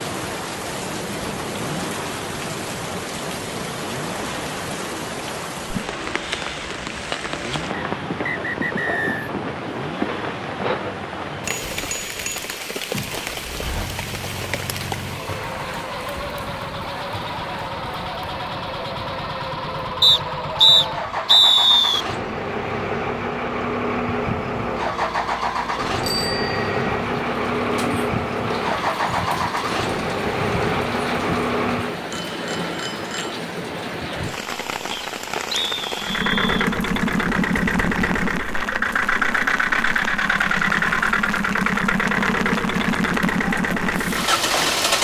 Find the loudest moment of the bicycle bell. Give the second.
26 s.